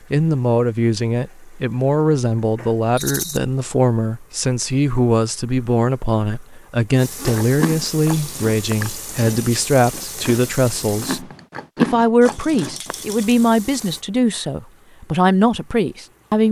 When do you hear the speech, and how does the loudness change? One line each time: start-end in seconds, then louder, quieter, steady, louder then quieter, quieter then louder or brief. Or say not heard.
0.1-16.4 steady.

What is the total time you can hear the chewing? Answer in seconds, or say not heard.
6 s.